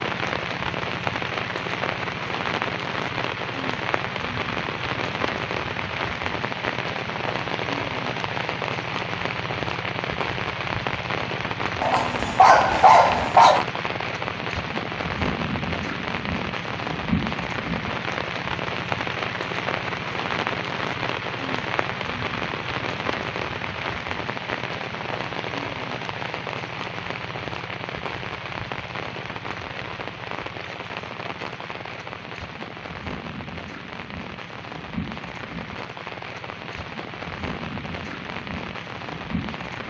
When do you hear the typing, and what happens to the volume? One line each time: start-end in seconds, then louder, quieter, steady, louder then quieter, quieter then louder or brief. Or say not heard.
not heard.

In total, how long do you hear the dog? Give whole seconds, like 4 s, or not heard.
2 s.